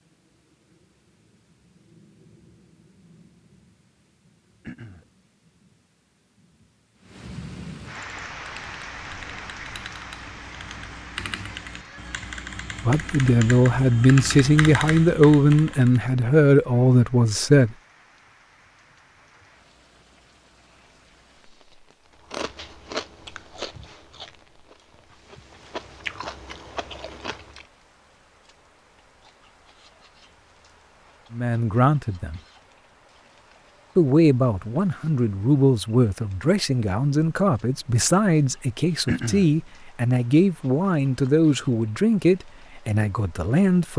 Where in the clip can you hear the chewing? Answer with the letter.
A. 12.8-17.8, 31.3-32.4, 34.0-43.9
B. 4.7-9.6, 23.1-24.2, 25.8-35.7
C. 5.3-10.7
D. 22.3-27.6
D.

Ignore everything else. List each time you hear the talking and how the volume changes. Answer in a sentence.
The talking can be heard from 12.8 to 17.8 s, at a steady volume; briefly from 31.3 to 32.4 s; and from 34.0 to 43.9 s, at a steady volume.